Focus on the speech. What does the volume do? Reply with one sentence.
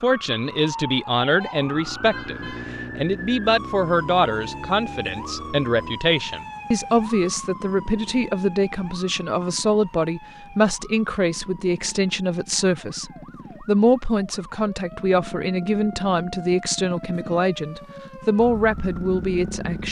The loudness of the speech stays about the same.